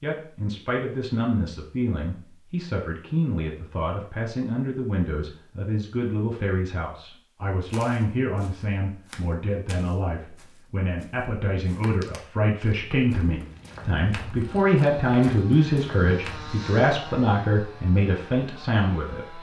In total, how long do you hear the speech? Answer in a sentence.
You can hear the speech for 19 seconds altogether.